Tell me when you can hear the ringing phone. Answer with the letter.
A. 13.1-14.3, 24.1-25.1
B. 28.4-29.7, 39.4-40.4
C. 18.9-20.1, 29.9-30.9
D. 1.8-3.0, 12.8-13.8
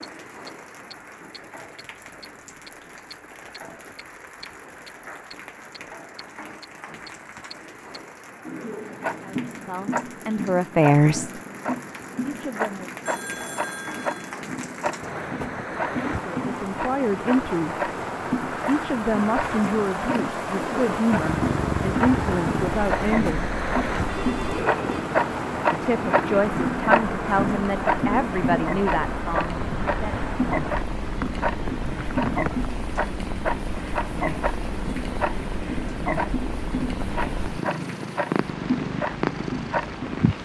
A.